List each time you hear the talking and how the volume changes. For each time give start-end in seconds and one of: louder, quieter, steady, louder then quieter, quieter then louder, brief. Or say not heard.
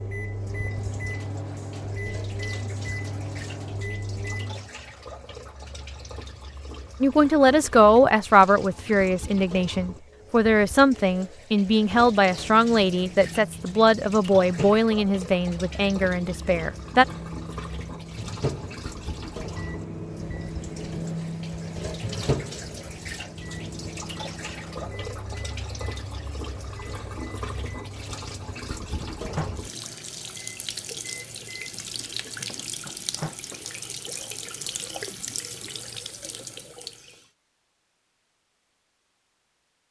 7.0-17.1 quieter.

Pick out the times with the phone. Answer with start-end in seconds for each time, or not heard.
not heard.